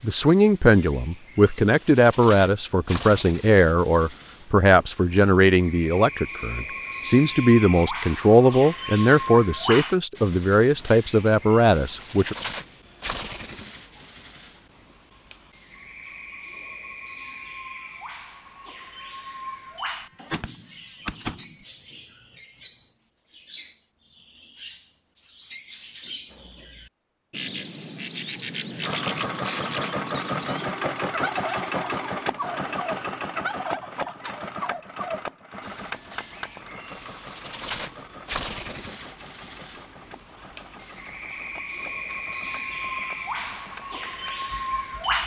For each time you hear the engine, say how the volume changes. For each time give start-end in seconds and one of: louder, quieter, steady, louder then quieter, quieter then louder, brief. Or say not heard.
28.8-45.2 quieter.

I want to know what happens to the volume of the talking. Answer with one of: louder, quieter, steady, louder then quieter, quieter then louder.
steady.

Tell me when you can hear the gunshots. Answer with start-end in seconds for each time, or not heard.
20.0-21.6.